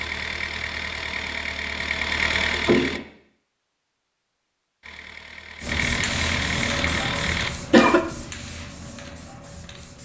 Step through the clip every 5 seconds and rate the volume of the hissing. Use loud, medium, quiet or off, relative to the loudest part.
off, loud.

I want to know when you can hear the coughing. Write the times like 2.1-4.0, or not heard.
2.5-3.0, 6.8-8.0.